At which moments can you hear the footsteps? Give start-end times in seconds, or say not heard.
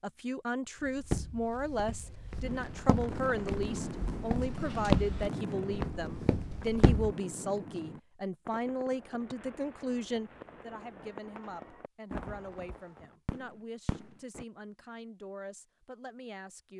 0.8-7.2.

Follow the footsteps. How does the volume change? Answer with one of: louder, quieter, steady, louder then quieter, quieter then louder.
louder then quieter.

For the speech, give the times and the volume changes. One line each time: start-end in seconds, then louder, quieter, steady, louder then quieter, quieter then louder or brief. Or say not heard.
0.0-16.7 quieter.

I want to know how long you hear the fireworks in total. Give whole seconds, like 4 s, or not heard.
12 s.